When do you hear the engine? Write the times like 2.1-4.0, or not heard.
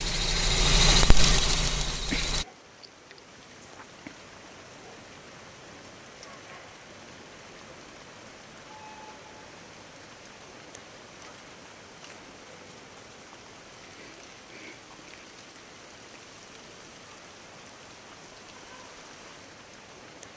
0.0-2.5.